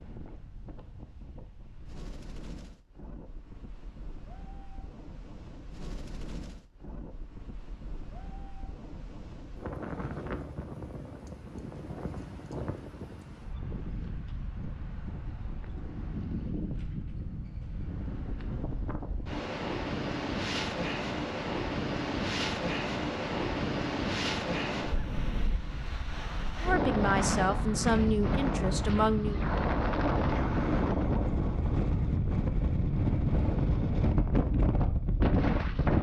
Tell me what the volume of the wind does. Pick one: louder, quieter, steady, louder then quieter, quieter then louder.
louder.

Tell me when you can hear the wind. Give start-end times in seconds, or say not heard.
0.0-35.9.